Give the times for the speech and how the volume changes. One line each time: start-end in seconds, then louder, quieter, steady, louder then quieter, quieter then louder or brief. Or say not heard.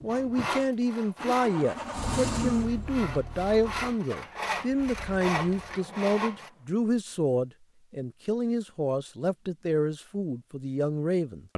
0.0-11.5 steady.